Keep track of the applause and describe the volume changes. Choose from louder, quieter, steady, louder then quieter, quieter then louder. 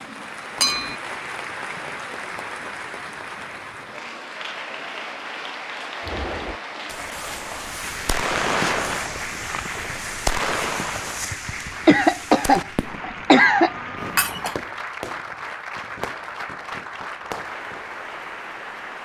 steady.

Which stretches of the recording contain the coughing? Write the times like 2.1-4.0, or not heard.
11.8-13.8.